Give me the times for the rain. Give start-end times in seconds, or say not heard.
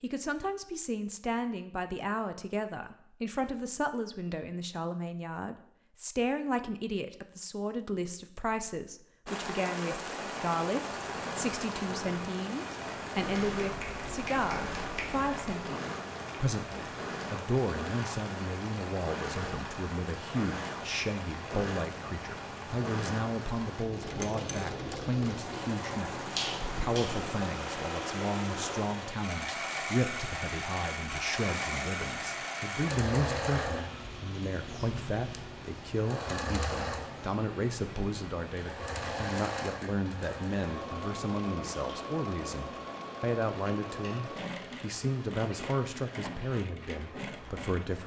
9.2-48.0.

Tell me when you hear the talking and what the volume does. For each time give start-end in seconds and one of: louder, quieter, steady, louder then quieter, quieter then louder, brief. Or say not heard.
0.0-48.0 steady.